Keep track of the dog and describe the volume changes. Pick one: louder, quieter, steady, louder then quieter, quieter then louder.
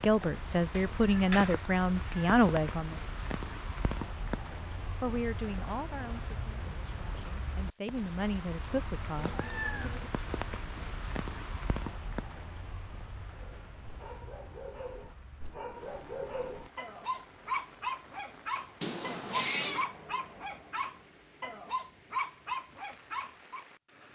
louder.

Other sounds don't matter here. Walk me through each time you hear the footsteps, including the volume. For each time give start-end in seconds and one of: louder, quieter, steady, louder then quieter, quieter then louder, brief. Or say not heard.
not heard.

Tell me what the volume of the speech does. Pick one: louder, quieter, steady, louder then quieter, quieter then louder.
quieter then louder.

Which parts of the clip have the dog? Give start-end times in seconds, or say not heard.
13.4-23.6.